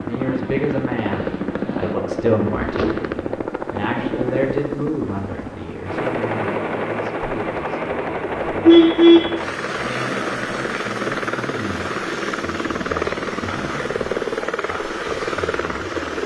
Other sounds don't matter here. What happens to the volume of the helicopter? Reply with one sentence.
The volume of the helicopter stays about the same.